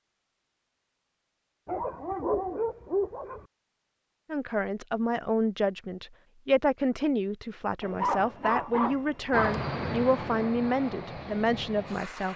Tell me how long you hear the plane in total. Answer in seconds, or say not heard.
3 s.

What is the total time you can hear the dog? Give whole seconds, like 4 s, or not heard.
4 s.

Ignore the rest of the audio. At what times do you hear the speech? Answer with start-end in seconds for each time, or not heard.
4.3-12.3.